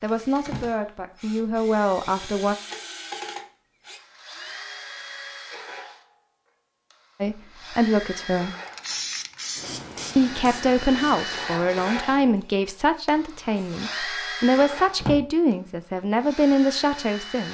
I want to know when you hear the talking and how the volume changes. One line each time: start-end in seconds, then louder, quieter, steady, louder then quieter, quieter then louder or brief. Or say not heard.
0.0-2.5 brief
7.2-8.6 brief
10.2-17.4 quieter then louder.